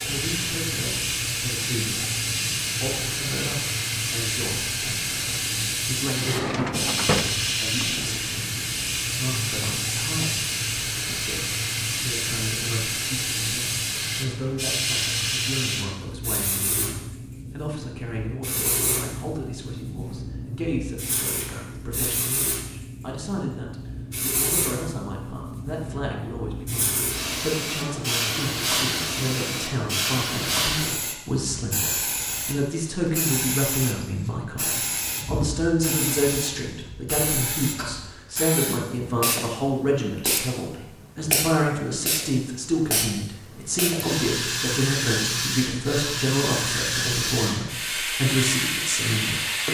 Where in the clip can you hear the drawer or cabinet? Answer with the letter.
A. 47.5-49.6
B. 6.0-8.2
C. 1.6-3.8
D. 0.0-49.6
B.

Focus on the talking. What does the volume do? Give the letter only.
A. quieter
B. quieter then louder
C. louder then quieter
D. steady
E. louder
E.